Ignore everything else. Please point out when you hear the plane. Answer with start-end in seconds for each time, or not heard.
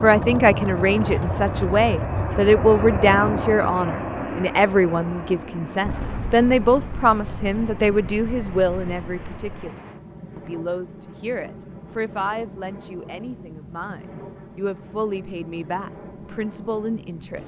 0.0-17.4.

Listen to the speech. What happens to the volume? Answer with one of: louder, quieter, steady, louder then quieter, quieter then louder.
quieter.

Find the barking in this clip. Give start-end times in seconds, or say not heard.
not heard.